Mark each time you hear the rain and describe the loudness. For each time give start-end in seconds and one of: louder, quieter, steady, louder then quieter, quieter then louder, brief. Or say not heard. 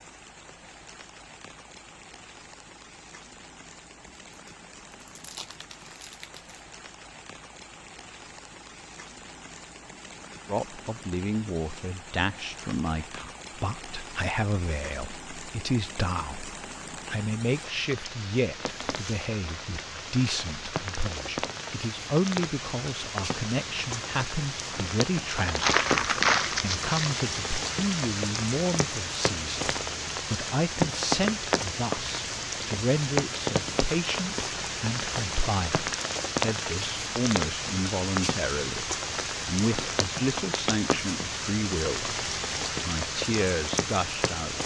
0.0-44.6 louder.